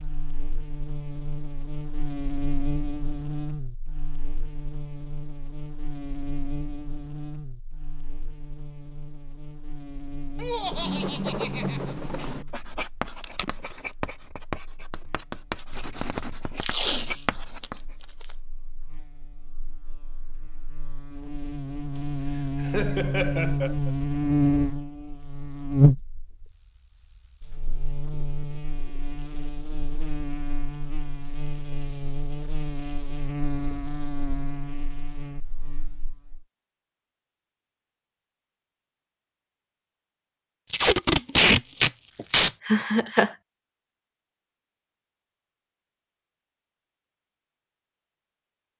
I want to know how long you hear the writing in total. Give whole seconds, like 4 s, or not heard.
7 s.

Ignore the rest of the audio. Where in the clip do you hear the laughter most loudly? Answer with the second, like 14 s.
43 s.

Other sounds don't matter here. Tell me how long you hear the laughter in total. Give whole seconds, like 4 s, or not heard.
4 s.